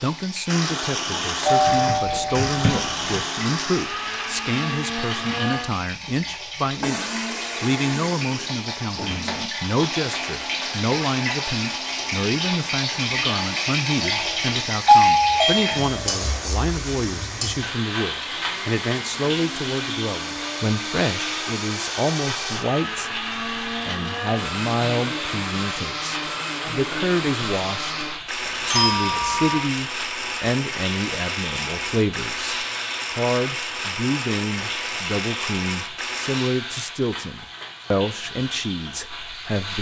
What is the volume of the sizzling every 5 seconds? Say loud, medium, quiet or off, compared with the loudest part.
medium, medium, loud, loud, medium, medium, medium, medium.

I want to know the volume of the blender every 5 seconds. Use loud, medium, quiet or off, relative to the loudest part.
loud, loud, medium, medium, loud, loud, loud, loud.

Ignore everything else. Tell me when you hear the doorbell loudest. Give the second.
15 s.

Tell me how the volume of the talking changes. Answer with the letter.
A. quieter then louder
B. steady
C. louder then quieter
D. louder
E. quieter
B.